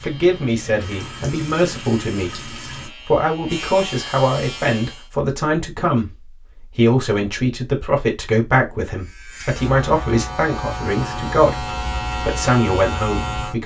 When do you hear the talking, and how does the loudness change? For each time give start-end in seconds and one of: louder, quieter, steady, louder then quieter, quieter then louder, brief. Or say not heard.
0.0-13.6 steady.